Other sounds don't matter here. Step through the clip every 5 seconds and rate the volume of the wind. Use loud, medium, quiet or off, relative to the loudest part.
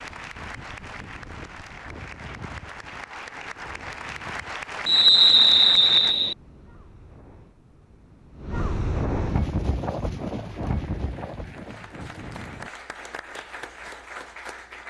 quiet, loud, loud.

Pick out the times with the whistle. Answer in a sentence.
The whistle can be heard from 4.8 to 6.3 s.